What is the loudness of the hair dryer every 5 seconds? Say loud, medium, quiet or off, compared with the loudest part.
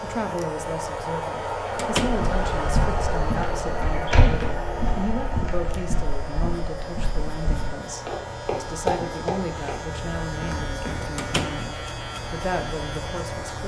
loud, medium, medium.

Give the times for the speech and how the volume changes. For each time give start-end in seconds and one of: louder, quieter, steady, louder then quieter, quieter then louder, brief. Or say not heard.
0.0-13.6 steady.